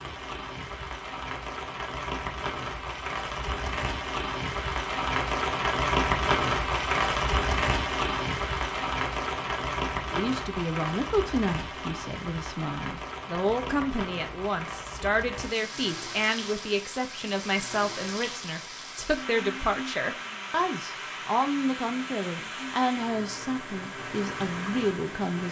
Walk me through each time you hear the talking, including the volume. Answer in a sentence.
The talking can be heard from 10.1 to 25.4 s, at a steady volume.